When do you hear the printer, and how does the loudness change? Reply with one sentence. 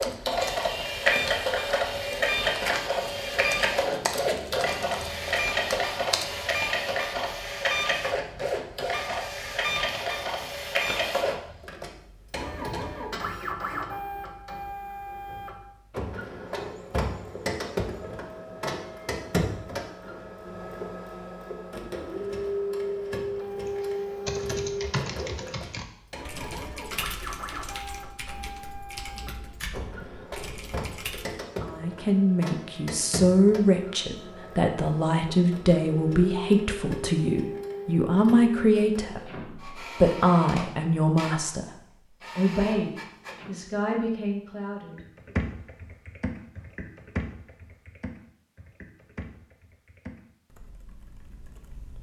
You can hear the printer from 0.0 to 43.5 s, getting quieter.